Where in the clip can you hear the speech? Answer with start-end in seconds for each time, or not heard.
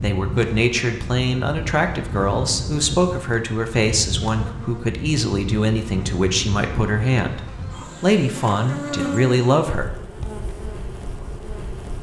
0.0-7.4, 8.0-9.9.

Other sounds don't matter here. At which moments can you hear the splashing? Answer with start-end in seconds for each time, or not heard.
not heard.